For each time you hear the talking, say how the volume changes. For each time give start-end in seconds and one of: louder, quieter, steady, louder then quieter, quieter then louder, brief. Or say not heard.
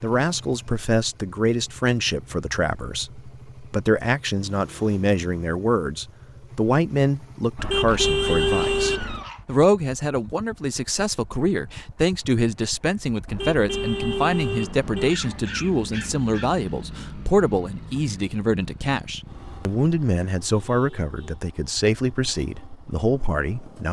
0.0-23.8 steady.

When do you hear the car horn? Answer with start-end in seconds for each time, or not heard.
7.5-9.2, 13.2-15.2.